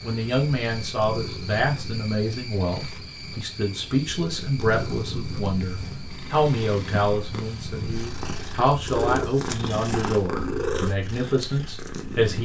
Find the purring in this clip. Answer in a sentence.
You can hear the purring from 0.0 to 12.4 s.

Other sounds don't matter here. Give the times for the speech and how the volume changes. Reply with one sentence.
The speech can be heard from 0.0 to 12.4 s, at a steady volume.